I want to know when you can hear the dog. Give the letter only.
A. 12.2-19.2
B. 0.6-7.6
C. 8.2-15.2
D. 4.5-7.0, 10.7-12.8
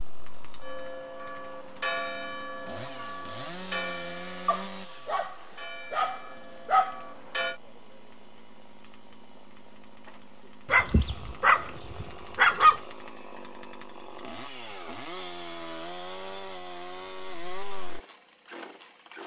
D.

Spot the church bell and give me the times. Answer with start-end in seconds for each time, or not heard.
0.6-7.6.